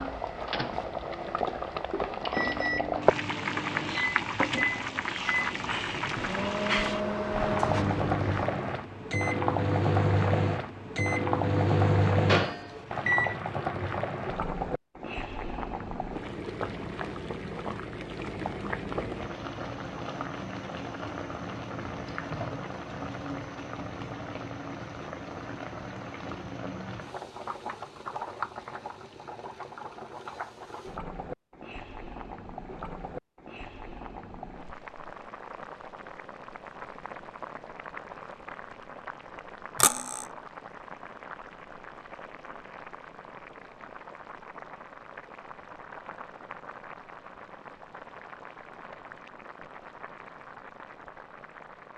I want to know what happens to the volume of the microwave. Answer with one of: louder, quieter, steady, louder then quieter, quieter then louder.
louder.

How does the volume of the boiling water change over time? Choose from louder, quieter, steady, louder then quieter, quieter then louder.
quieter.